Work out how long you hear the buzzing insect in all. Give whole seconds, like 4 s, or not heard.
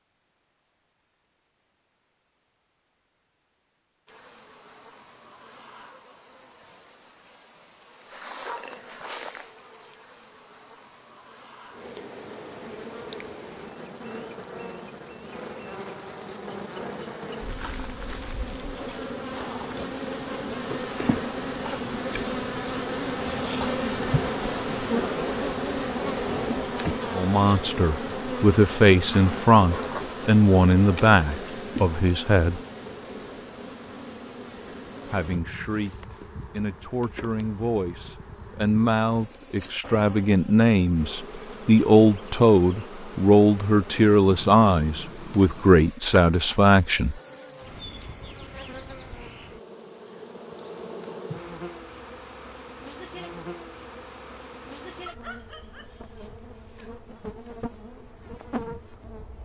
55 s.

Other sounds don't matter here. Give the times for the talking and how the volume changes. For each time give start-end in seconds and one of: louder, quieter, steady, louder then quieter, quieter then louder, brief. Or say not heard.
27.1-32.6 louder then quieter
35.0-47.2 louder.